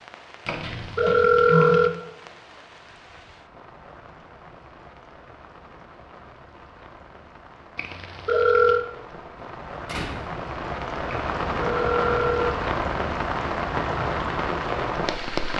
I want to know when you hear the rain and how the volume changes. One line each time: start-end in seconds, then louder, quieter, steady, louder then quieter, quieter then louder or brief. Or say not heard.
0.0-15.5 louder.